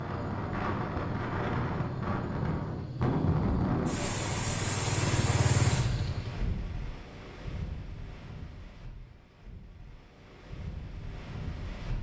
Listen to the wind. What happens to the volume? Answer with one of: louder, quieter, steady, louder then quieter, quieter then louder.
quieter.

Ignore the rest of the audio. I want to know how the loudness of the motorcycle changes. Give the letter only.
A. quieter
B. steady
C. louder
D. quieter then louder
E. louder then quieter
C.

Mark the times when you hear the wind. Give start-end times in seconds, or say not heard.
0.0-11.9.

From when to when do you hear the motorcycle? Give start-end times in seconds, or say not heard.
0.0-6.5.